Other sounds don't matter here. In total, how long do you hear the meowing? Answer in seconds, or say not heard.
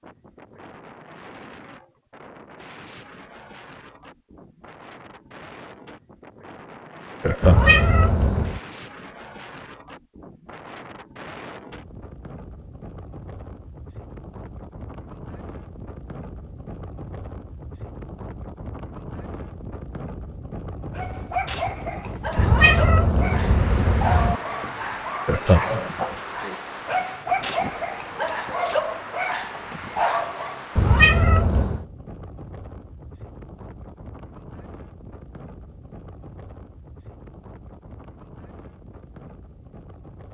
4 s.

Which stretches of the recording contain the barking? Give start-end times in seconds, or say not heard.
20.9-30.6.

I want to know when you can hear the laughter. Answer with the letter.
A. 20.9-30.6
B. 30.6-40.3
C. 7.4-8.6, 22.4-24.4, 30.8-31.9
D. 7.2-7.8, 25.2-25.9
D.